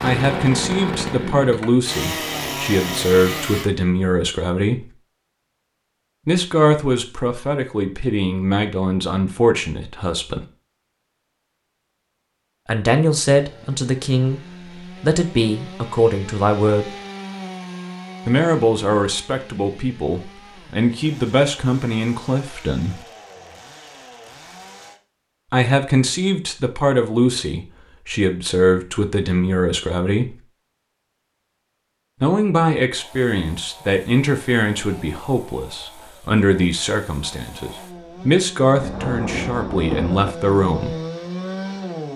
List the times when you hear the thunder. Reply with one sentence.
The thunder can be heard from 38.8 to 40.4 s.